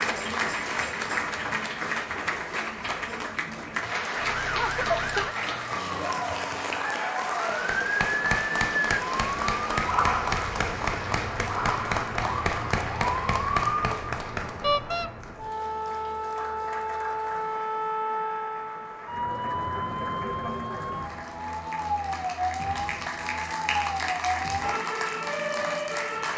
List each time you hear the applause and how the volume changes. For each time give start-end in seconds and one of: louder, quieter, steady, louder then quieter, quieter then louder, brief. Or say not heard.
0.0-26.3 quieter then louder.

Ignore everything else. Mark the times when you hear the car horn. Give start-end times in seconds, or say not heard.
14.6-15.1.